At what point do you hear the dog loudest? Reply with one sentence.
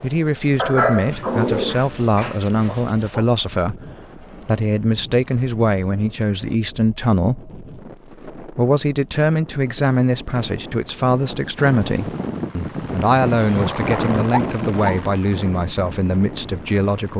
The loudest moment of the dog is at 1 second.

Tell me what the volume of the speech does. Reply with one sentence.
The volume of the speech stays about the same.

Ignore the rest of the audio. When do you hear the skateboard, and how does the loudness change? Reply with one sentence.
You can't hear the skateboard here.